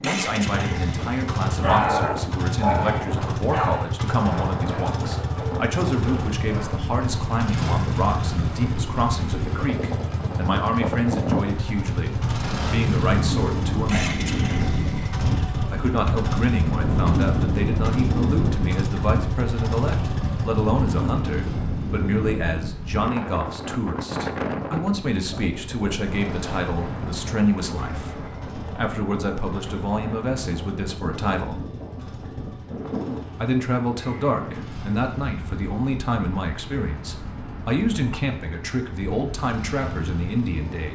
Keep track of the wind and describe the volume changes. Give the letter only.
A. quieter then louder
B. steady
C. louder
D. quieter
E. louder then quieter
E.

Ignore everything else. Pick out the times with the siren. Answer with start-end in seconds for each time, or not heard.
not heard.